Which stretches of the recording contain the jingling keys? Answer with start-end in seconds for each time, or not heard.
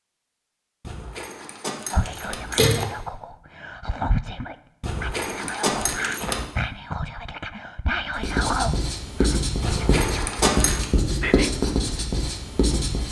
0.8-2.9, 4.8-6.5, 9.6-10.9.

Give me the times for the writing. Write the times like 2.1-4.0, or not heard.
8.2-13.0.